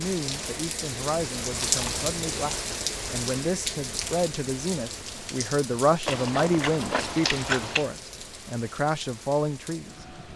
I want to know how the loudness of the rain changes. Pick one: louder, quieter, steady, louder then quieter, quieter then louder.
quieter.